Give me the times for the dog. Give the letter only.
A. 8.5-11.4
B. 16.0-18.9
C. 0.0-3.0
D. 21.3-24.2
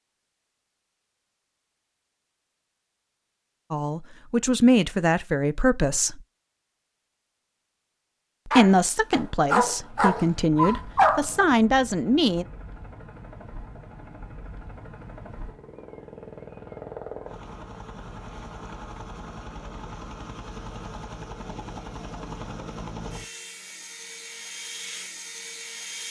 A.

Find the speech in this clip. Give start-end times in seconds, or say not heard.
3.7-6.2, 8.4-12.4.